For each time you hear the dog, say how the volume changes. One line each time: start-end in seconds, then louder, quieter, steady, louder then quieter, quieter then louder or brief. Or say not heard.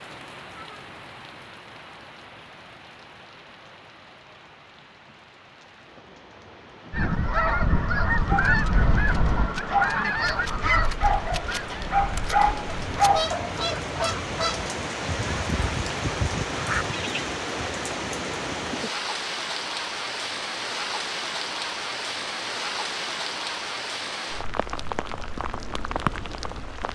8.1-13.6 louder.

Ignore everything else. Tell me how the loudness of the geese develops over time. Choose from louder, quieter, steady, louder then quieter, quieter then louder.
quieter then louder.